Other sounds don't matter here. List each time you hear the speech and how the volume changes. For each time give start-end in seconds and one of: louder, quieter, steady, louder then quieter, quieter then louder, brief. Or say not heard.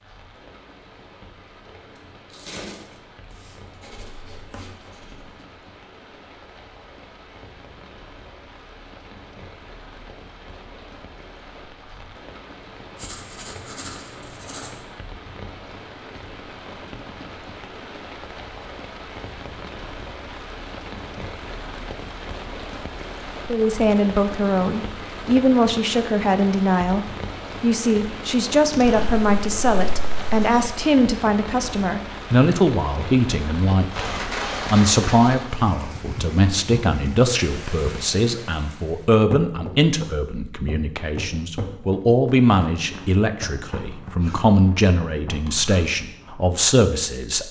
23.4-47.4 steady.